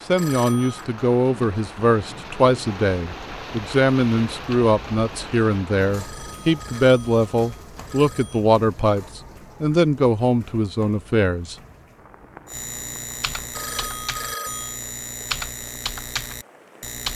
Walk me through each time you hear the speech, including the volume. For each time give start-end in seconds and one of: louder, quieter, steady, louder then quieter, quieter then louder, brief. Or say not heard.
0.1-11.6 steady.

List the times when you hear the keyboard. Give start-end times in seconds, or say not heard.
12.4-17.1.